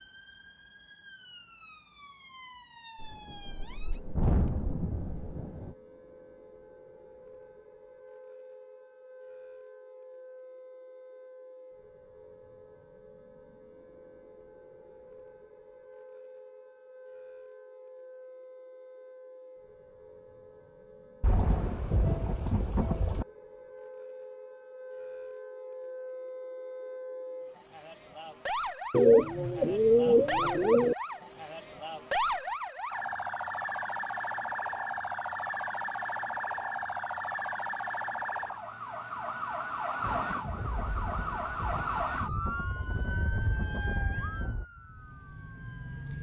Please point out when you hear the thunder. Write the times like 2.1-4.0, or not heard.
3.0-5.8, 21.2-23.2, 40.0-44.6.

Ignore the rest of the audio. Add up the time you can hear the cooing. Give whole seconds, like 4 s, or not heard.
2 s.